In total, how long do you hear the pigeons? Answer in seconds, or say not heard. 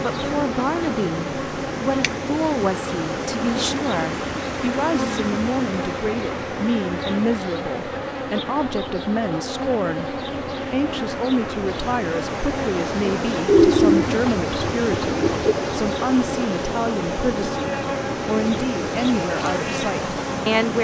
2 s.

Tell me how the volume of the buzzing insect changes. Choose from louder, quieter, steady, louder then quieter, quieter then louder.
steady.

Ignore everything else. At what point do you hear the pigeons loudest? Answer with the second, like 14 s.
14 s.